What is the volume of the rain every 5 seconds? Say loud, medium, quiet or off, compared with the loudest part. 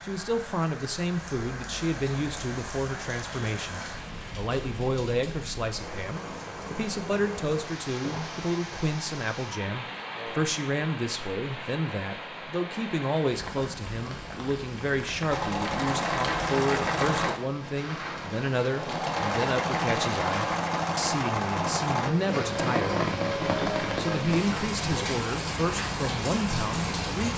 medium, medium, medium, medium, loud, loud.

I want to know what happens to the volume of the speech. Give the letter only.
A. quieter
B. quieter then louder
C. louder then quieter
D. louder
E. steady
E.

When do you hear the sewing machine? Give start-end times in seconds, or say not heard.
15.3-22.1.